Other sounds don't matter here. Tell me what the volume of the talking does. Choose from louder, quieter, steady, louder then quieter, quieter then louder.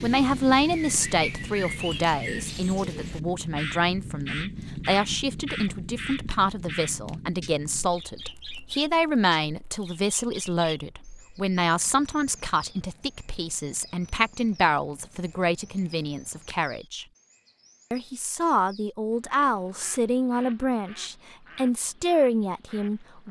steady.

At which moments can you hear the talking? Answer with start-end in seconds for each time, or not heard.
0.0-17.1, 17.9-23.2.